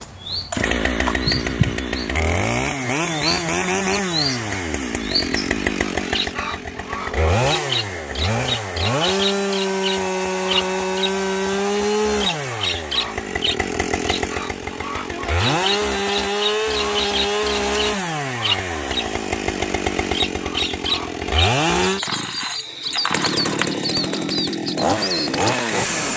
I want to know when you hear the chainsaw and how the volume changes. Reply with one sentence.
The chainsaw can be heard from 0.0 to 26.1 s, at a steady volume.